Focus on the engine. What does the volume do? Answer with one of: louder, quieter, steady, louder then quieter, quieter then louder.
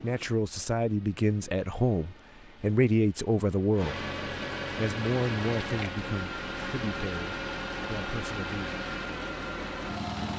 louder.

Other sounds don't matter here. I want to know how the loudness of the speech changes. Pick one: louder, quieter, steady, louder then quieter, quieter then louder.
quieter.